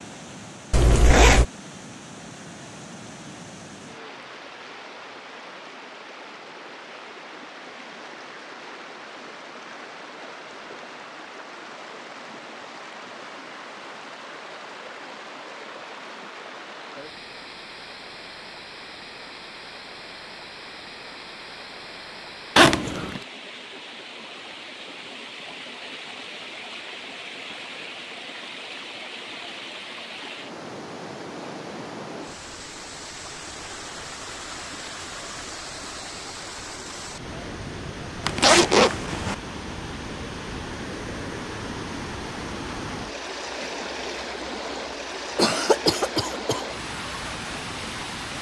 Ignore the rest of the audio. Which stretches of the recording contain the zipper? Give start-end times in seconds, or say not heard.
0.7-1.4, 22.6-23.2, 38.2-39.4.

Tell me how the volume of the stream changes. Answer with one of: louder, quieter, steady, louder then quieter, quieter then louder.
louder.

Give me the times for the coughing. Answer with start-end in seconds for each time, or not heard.
45.4-46.6.